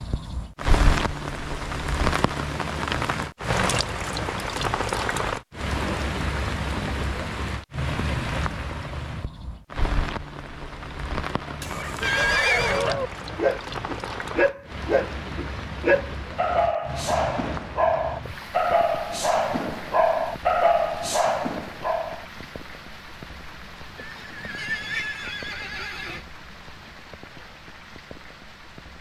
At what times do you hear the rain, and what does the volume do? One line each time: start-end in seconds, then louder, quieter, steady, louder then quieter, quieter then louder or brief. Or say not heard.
0.0-28.9 quieter.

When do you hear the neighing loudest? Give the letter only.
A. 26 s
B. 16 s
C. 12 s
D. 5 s
C.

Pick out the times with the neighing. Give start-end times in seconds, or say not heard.
11.6-12.8, 23.9-26.2.